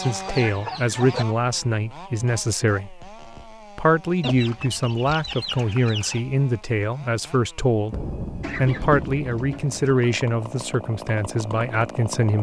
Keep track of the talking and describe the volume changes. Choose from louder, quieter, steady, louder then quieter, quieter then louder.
steady.